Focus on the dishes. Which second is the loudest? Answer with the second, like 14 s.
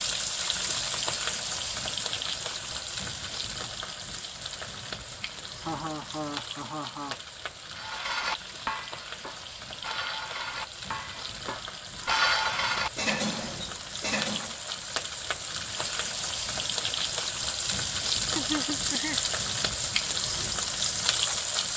12 s.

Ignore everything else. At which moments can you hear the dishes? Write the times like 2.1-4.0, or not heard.
7.8-14.6.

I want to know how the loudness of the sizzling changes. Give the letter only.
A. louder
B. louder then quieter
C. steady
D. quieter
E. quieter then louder
E.